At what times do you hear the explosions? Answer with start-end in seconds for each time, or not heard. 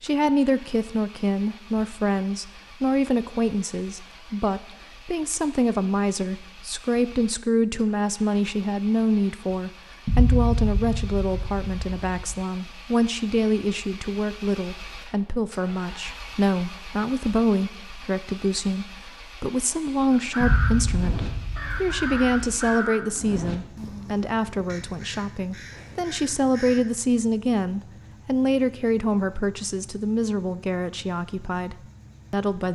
10.1-12.3, 20.4-22.6.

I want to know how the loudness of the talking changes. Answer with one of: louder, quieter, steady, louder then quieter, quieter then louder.
steady.